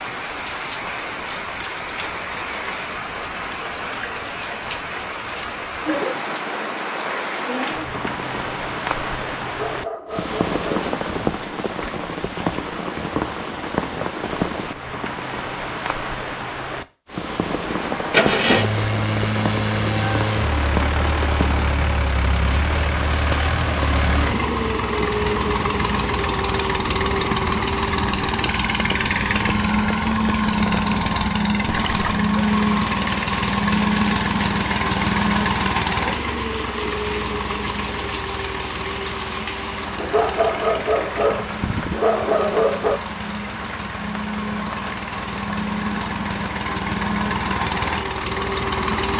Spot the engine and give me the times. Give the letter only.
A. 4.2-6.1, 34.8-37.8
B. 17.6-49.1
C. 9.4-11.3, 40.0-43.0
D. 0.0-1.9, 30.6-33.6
B.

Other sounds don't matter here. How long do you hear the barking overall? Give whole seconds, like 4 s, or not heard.
5 s.